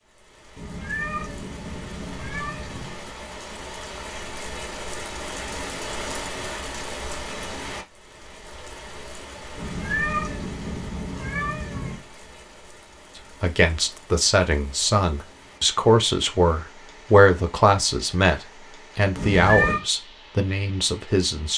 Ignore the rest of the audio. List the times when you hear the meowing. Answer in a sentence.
You can hear the meowing from 0.6 to 3.0 s, from 9.6 to 12.1 s and from 19.1 to 19.8 s.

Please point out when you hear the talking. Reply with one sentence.
You can hear the talking from 13.2 to 21.5 s.